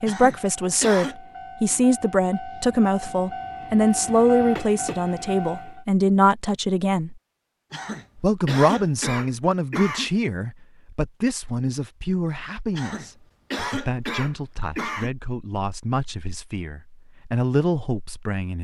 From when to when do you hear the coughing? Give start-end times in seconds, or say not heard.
0.1-1.1, 7.7-10.1, 12.8-15.1.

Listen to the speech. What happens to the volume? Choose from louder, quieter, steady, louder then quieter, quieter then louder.
quieter.